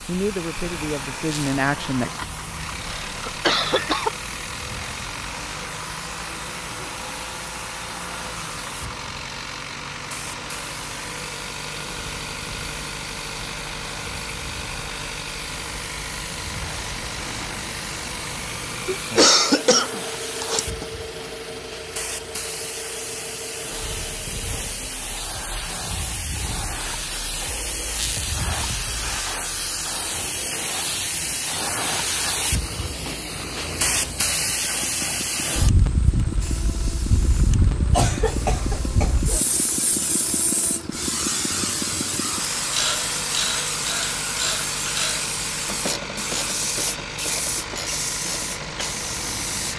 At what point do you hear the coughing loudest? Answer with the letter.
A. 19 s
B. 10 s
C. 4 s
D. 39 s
A.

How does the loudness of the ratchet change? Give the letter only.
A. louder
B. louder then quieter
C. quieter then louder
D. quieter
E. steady
D.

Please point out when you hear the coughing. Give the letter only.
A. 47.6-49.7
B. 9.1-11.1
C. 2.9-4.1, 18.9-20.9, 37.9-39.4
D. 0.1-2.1
C.